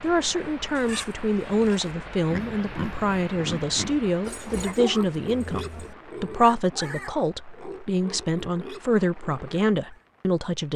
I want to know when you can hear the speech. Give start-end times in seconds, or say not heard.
0.0-10.7.